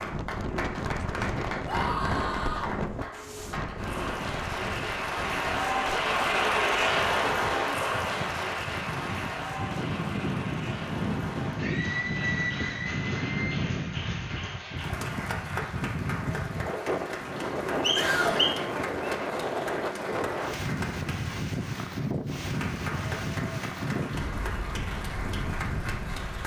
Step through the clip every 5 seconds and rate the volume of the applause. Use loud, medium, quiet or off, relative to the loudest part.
medium, loud, medium, medium, medium, medium.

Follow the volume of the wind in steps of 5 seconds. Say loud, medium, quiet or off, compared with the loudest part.
loud, medium, loud, loud, loud, medium.